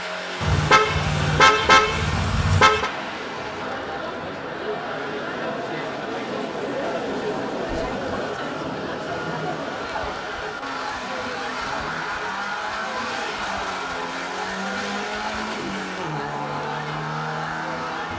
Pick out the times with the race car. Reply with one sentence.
You can hear the race car from 0.0 to 18.1 s.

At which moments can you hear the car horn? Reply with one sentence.
You can hear the car horn from 0.4 to 2.9 s.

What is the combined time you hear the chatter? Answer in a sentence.
You can hear the chatter for 15 seconds altogether.